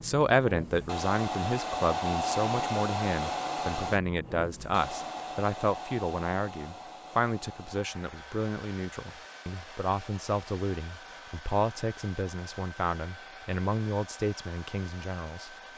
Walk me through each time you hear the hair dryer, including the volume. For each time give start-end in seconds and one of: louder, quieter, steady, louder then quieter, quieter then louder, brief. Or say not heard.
0.0-15.7 quieter.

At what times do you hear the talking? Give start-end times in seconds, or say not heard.
0.0-15.5.